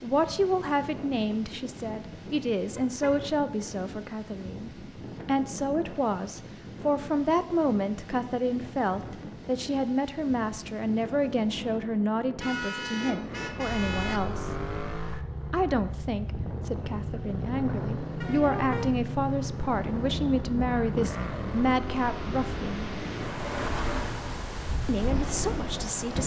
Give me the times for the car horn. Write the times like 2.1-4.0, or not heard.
2.8-3.2, 12.4-14.2, 18.2-18.9.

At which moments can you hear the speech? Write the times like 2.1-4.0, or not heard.
0.0-14.5, 15.5-22.9, 24.9-26.2.